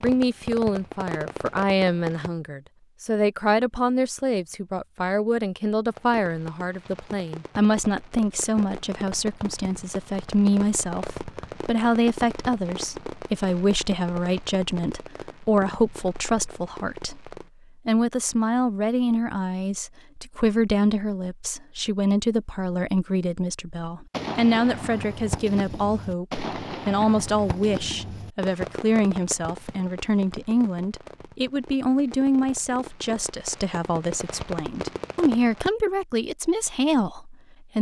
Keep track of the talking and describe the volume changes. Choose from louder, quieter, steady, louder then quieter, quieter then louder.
steady.